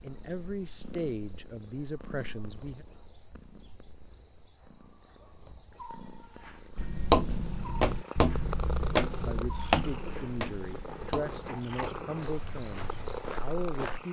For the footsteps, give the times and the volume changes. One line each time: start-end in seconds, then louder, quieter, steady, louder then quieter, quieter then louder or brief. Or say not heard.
6.8-14.0 quieter.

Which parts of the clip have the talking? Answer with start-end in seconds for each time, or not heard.
0.0-2.9, 9.1-14.0.